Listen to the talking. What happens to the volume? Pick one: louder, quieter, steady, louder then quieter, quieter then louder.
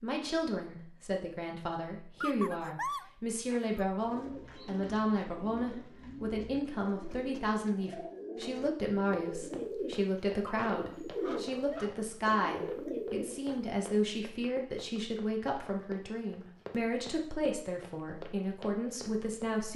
steady.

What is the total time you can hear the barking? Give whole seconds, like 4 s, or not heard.
3 s.